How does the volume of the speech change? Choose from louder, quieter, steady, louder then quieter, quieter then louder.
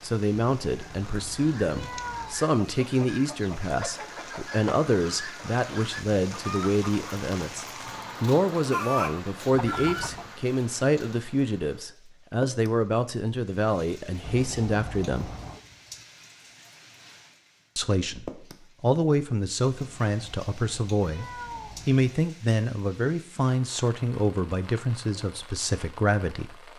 steady.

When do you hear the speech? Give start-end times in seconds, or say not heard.
0.0-15.3, 17.8-21.2, 21.9-26.7.